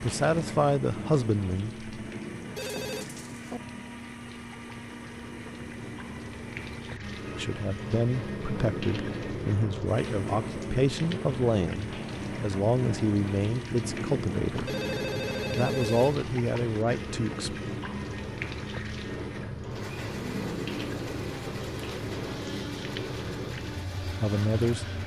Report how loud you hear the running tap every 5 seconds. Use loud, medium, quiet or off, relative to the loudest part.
medium, loud, loud, loud, loud.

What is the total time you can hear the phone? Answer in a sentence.
The phone can be heard for 3 seconds in total.